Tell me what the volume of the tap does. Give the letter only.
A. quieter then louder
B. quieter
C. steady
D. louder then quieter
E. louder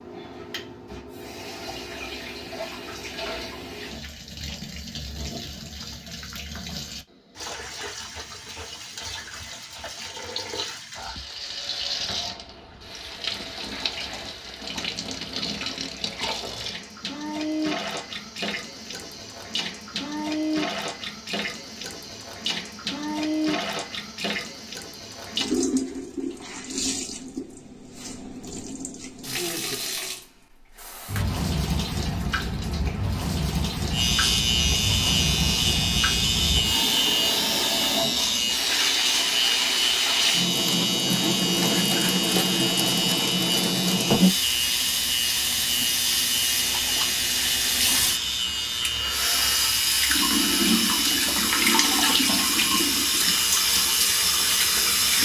E.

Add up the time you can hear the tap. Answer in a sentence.
The tap can be heard for 55 seconds in total.